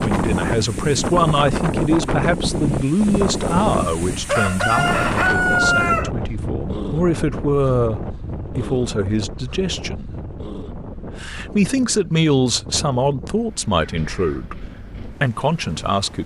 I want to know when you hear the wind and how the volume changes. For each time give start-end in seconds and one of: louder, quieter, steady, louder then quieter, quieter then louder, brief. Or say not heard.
0.0-16.2 quieter.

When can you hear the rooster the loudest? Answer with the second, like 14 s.
6 s.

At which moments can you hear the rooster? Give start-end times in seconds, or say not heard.
4.2-6.1.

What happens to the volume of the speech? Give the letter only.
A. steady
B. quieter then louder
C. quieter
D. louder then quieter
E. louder
A.